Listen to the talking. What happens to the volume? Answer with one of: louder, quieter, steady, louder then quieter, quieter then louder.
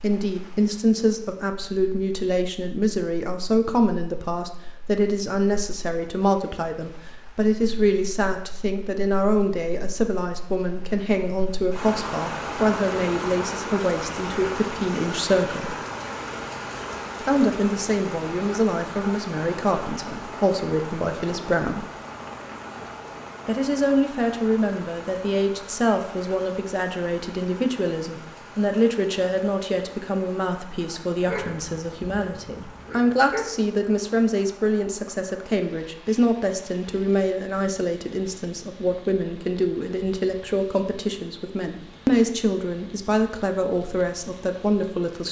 steady.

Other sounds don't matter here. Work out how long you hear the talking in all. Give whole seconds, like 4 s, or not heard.
42 s.